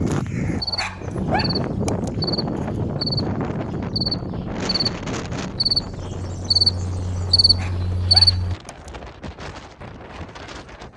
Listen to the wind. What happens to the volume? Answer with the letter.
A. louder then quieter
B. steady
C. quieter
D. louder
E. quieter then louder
C.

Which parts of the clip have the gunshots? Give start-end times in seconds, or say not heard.
not heard.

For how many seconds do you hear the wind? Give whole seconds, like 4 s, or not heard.
11 s.